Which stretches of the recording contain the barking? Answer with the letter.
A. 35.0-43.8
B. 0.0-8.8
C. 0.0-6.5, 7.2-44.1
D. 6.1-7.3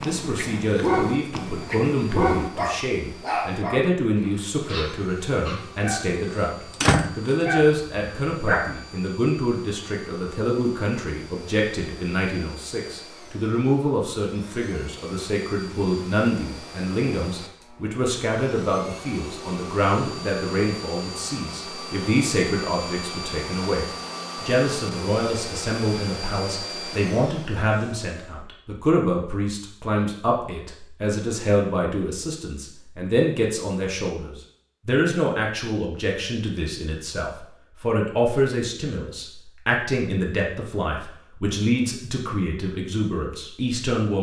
B.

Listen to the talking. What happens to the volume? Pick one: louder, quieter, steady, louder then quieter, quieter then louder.
steady.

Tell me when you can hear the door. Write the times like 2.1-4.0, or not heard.
6.1-7.3.